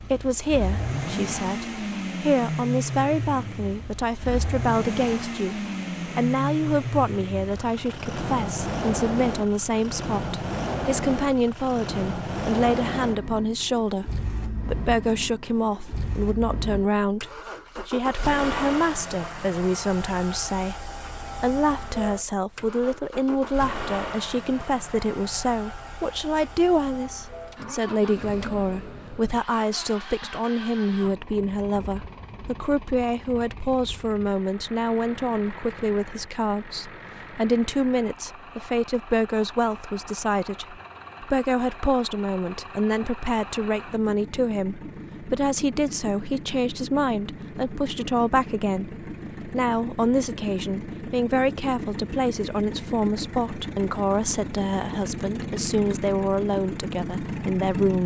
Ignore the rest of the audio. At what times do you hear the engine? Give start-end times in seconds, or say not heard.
0.0-58.0.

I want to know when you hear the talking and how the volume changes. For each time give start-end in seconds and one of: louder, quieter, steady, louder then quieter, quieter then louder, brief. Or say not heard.
0.0-58.0 steady.